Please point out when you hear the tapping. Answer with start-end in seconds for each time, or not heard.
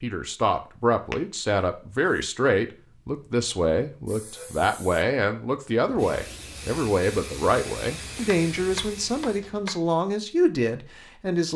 8.2-9.8.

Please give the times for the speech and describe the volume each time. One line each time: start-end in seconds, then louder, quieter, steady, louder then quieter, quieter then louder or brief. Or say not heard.
0.0-11.5 steady.